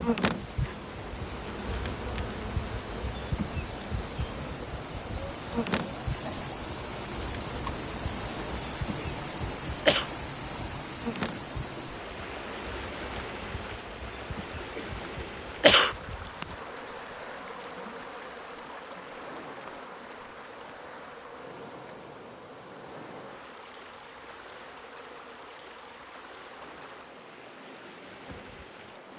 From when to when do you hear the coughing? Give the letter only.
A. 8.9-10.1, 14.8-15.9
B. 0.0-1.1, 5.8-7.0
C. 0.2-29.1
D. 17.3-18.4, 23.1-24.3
A.